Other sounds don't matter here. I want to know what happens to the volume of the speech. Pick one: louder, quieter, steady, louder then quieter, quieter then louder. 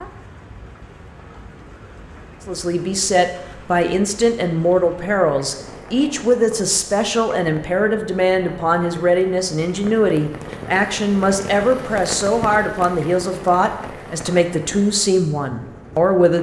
steady.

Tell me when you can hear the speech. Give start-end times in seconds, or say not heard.
2.5-16.3.